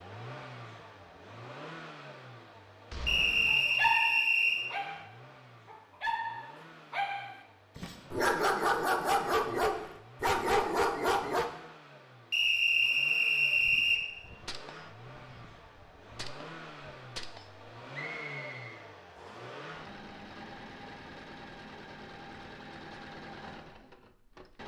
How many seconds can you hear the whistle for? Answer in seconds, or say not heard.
5 s.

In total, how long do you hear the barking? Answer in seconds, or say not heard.
8 s.